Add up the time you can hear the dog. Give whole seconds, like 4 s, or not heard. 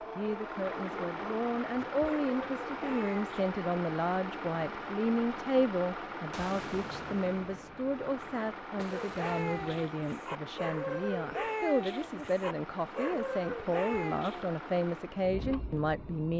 9 s.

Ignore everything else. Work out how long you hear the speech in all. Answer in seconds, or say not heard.
16 s.